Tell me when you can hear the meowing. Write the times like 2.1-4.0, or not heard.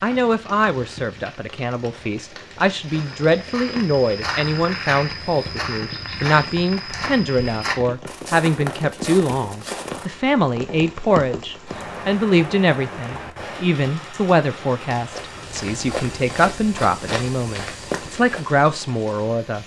not heard.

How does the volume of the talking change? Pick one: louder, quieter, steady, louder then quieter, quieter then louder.
steady.